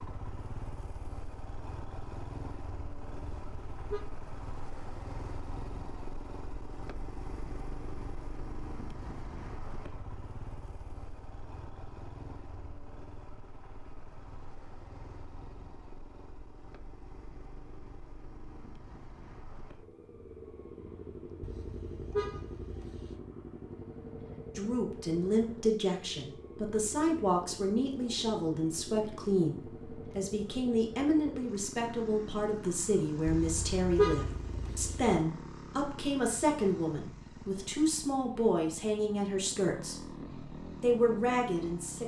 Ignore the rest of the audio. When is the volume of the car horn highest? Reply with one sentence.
The volume of the car horn peaks at 34 seconds.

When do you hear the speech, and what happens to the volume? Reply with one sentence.
The speech can be heard from 24.6 to 42.0 s, at a steady volume.